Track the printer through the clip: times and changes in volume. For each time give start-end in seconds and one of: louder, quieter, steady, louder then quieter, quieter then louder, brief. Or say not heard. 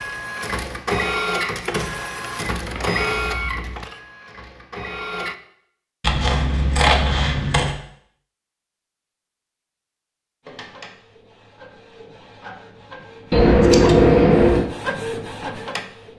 0.0-5.3 quieter
10.4-16.1 louder.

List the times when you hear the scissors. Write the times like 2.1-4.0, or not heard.
2.5-3.9, 6.0-7.8, 13.3-14.7.